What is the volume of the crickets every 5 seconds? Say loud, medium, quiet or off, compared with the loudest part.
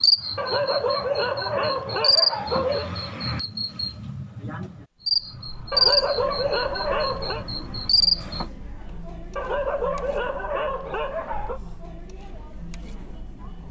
loud, loud, off.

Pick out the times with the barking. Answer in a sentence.
The barking can be heard from 0.3 to 2.9 s, from 5.7 to 7.5 s and from 9.3 to 11.6 s.